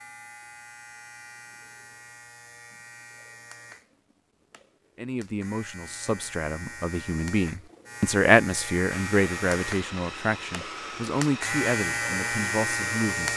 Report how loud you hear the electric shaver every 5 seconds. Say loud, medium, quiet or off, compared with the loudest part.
quiet, medium, loud.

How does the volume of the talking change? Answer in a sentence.
The loudness of the talking goes up, then down.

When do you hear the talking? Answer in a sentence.
You can hear the talking from 5.0 to 13.3 s.